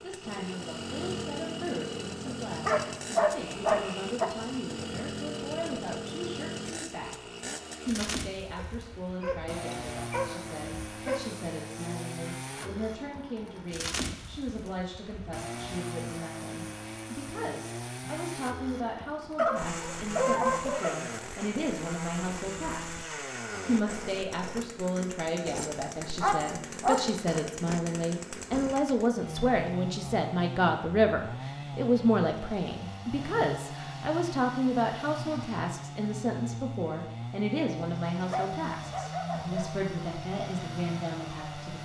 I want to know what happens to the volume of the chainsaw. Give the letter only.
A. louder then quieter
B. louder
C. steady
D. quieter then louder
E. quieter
C.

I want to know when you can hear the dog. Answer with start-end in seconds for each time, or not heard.
2.2-4.2, 8.6-11.2, 19.4-20.9, 25.6-27.0, 38.3-39.7.